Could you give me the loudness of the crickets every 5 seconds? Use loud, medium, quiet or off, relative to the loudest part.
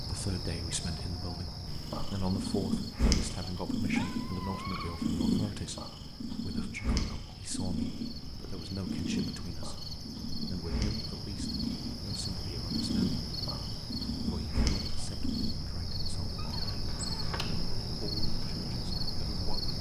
medium, medium, loud, loud.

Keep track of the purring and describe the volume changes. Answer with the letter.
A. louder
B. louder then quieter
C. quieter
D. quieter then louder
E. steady
C.